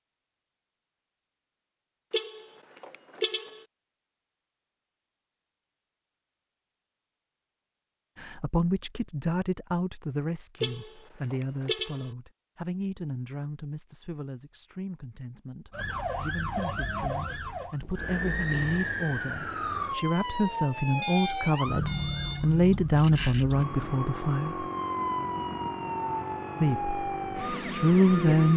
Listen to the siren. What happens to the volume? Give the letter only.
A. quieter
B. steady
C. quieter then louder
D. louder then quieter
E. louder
B.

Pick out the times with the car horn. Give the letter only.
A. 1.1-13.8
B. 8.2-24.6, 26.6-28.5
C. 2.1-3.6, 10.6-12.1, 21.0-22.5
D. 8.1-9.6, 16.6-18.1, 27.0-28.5
C.